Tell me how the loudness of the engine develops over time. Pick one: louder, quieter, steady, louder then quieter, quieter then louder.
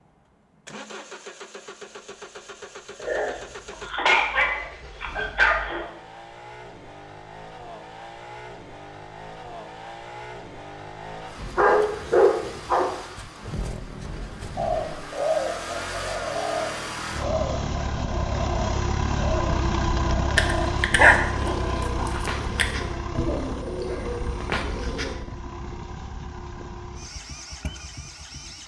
louder then quieter.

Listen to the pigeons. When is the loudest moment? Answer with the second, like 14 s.
15 s.